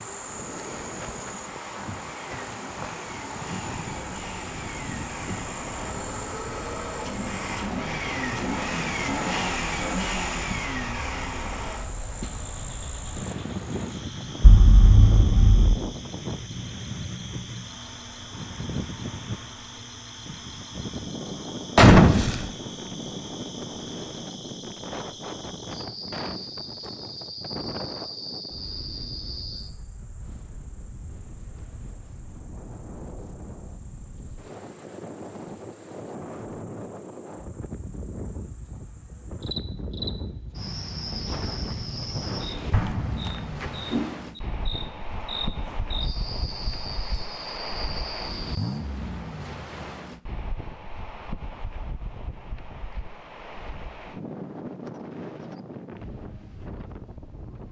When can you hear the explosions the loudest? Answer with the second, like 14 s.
22 s.